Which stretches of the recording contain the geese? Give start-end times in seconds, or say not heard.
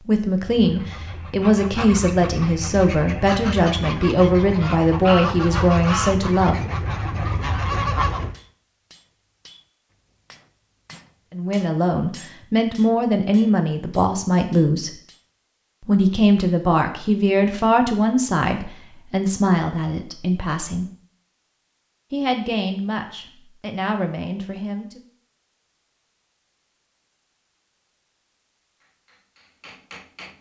0.3-8.4.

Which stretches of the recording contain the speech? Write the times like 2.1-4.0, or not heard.
0.1-6.6, 11.3-14.9, 15.8-20.9, 22.1-25.0.